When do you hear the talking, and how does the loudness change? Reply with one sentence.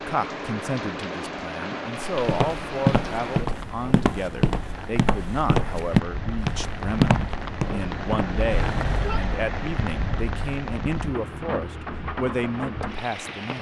You can hear the talking from 0.1 to 13.5 s, at a steady volume.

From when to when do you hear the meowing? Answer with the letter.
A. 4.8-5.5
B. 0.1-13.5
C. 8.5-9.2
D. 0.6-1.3
C.